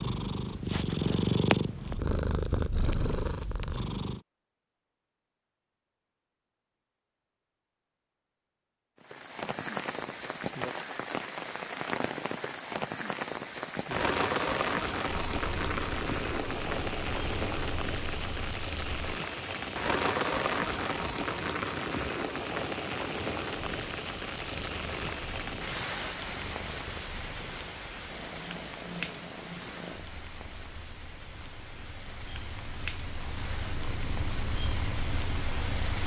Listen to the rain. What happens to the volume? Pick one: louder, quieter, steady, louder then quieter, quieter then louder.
quieter.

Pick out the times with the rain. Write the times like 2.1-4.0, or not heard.
9.0-36.0.